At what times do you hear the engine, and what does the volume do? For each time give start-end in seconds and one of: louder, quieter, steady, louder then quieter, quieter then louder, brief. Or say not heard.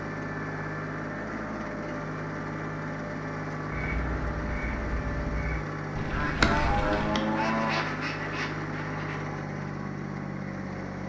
0.0-11.0 steady.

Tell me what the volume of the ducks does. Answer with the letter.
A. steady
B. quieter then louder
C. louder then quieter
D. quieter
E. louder
C.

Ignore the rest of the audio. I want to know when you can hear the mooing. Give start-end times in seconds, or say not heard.
6.3-7.8.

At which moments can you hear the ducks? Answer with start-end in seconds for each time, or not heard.
3.6-9.2.